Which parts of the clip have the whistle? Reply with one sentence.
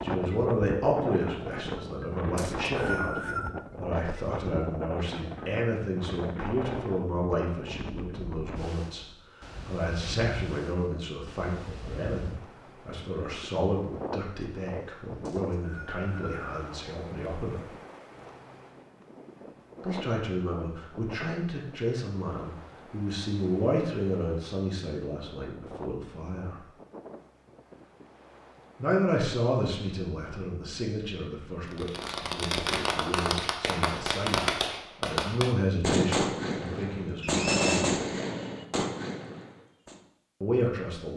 You can hear the whistle from 2.4 to 3.5 s, from 15.2 to 16.4 s and from 37.2 to 37.9 s.